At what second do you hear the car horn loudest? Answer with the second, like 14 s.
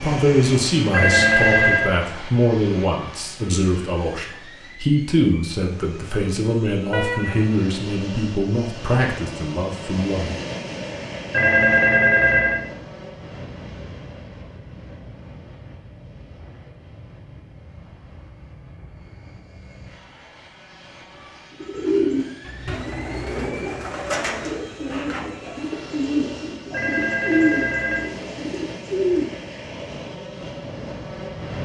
7 s.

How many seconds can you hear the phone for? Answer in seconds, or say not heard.
4 s.